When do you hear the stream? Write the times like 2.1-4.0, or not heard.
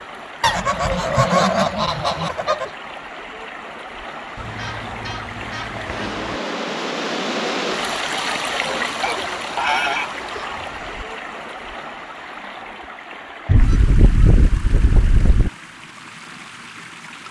0.0-17.2.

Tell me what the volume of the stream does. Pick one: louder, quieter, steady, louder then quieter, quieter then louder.
louder then quieter.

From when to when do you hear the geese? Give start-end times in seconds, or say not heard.
0.4-2.7, 4.3-6.4, 9.0-11.1, 13.4-15.5.